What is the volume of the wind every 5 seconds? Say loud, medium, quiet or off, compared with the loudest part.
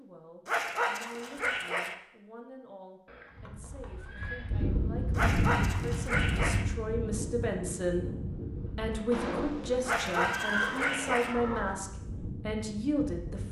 loud, loud, medium.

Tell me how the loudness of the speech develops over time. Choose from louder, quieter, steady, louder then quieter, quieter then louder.
louder.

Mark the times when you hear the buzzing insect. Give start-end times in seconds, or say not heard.
not heard.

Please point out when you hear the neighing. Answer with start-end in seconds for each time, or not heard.
3.0-4.5, 9.1-11.8.